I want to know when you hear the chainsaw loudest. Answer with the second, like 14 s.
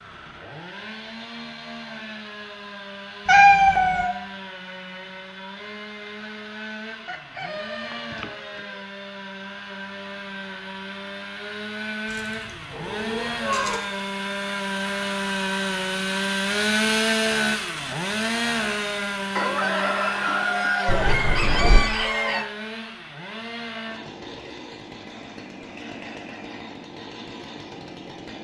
17 s.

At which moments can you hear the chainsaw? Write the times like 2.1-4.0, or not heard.
0.0-28.3.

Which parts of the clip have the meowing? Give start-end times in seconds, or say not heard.
3.2-4.1, 12.1-13.8, 20.9-21.8.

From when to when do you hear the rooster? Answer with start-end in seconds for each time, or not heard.
7.0-8.8, 19.4-22.4.